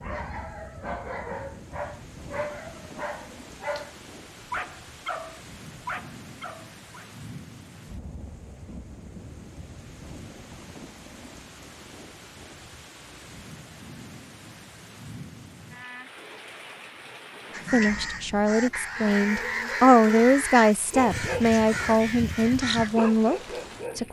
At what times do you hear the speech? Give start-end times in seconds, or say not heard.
17.7-24.0.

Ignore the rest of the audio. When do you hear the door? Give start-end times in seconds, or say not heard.
not heard.